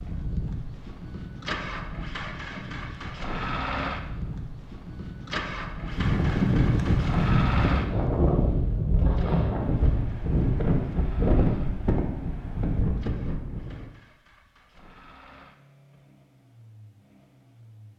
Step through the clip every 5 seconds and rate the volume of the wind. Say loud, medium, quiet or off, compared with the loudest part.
quiet, loud, loud, off.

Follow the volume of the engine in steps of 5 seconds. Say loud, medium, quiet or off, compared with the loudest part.
loud, loud, quiet, quiet.